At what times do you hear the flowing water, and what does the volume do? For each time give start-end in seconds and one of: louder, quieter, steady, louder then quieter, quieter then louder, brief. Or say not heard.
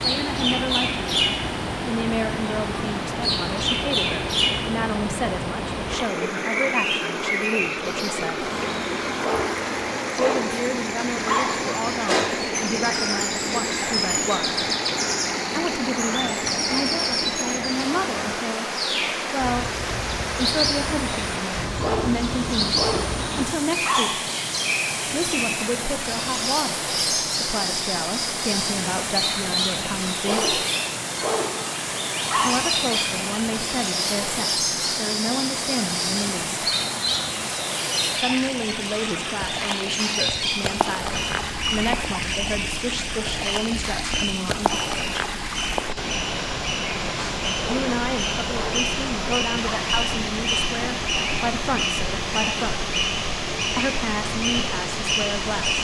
0.0-55.8 steady.